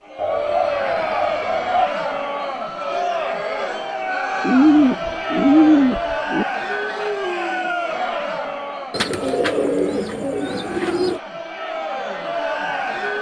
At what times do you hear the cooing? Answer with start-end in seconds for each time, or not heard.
0.1-1.9, 4.4-6.5, 8.9-11.2.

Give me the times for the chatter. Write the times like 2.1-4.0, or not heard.
0.0-13.1.